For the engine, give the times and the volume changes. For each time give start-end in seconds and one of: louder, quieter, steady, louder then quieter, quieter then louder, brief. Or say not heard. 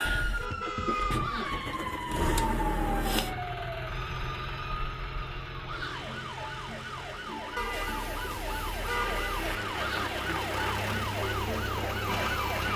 0.0-12.7 quieter then louder.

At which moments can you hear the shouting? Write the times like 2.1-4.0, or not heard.
1.1-1.7, 5.6-6.1, 9.7-10.2.